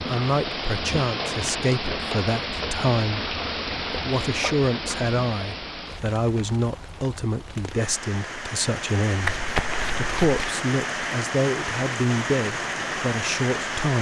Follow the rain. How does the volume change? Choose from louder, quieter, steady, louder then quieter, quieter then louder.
quieter then louder.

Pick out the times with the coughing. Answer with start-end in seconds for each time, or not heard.
not heard.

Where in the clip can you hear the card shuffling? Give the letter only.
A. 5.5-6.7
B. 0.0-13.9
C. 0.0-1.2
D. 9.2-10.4
D.